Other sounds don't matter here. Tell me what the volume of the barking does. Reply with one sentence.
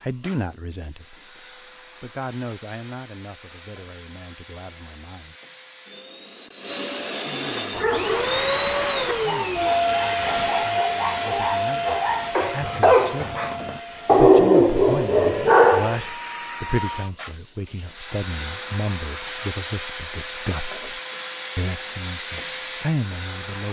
The volume of the barking goes up.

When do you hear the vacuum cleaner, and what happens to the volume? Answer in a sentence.
You can hear the vacuum cleaner from 0.0 to 23.6 s, getting louder then quieter.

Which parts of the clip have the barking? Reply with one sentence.
You can hear the barking from 7.7 to 16.0 s.